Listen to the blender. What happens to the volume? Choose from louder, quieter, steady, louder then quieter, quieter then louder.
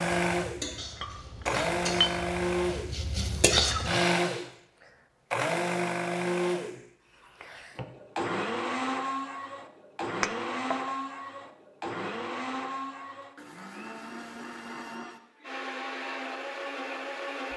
quieter.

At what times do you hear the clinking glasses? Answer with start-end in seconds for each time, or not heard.
1.0-2.1, 10.2-10.8.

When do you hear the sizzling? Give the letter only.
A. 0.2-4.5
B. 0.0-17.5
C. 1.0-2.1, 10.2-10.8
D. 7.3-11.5
A.